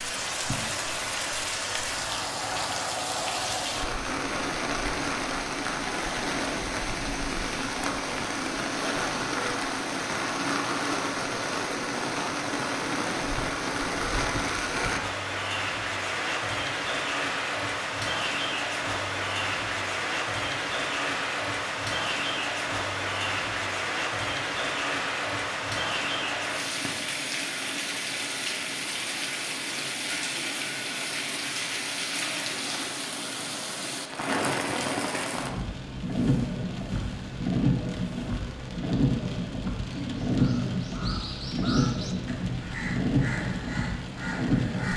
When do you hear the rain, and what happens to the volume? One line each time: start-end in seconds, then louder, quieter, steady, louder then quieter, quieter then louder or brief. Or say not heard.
0.0-44.9 steady.